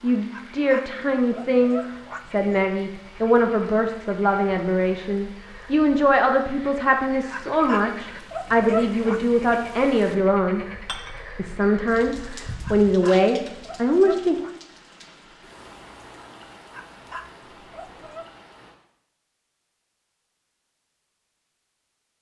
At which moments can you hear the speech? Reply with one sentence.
You can hear the speech from 0.0 to 10.7 s and from 11.3 to 14.3 s.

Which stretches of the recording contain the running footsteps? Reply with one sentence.
The running footsteps can't be heard in this clip.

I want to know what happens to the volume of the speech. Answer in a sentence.
The loudness of the speech stays about the same.